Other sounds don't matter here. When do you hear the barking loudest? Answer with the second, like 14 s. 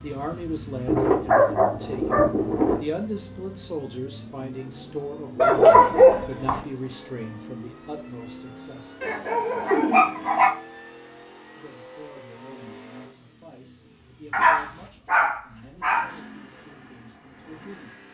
6 s.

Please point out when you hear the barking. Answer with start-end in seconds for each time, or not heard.
0.8-2.8, 5.3-6.6, 9.0-10.5, 14.3-16.1.